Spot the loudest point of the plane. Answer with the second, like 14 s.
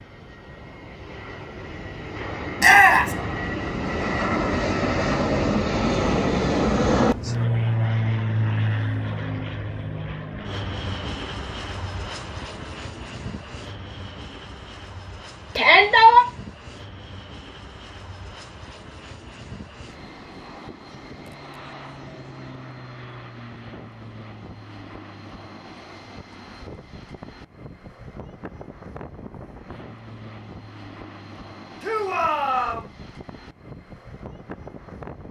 7 s.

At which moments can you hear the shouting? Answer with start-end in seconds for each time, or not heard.
2.6-3.1, 15.6-16.2, 31.8-32.9.